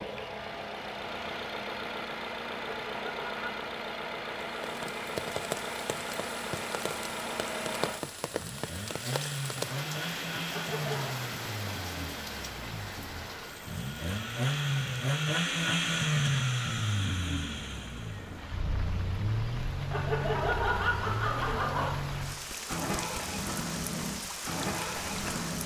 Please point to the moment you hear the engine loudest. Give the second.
16 s.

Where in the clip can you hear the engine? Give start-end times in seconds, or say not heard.
0.0-25.6.